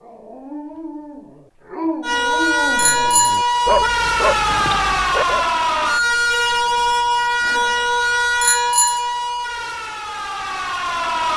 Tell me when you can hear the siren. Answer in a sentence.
The siren can be heard from 2.0 to 11.3 s.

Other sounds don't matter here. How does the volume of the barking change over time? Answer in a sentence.
The loudness of the barking goes up.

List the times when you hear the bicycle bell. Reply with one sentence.
The bicycle bell can be heard from 2.8 to 3.9 s and from 8.4 to 9.1 s.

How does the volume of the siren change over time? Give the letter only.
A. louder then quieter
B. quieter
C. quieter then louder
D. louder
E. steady
B.